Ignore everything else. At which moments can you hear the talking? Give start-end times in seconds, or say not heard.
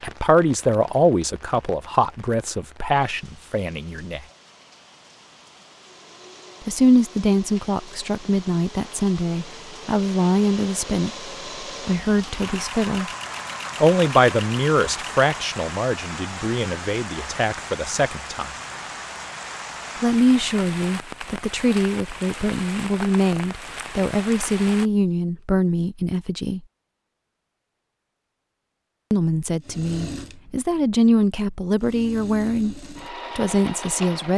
0.0-4.2, 6.7-11.1, 11.8-13.1, 13.8-18.5, 20.0-26.6, 29.1-34.3.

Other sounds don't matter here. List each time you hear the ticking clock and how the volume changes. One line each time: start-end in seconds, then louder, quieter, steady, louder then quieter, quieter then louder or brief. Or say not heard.
not heard.